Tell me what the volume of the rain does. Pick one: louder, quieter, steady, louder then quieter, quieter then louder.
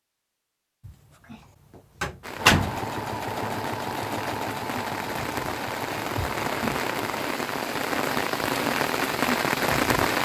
louder.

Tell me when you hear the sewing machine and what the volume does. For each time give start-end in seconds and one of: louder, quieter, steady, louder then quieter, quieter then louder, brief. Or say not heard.
2.4-7.2 quieter.